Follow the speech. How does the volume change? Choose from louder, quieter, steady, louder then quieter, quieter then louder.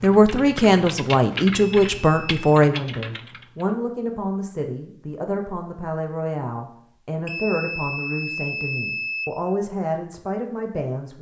quieter.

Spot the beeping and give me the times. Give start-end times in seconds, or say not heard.
1.6-2.6, 7.2-9.2.